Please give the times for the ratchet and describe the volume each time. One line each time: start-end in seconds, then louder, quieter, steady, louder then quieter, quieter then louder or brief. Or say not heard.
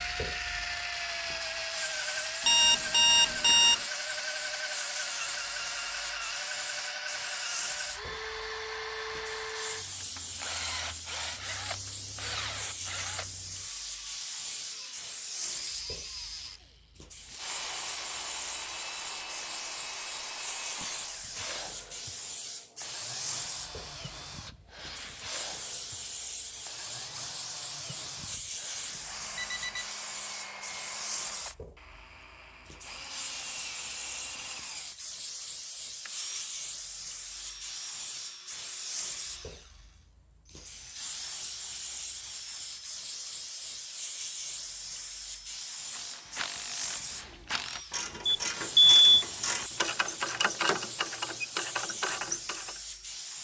45.9-52.8 louder.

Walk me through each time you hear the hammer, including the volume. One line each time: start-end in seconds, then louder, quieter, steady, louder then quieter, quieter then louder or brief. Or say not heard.
not heard.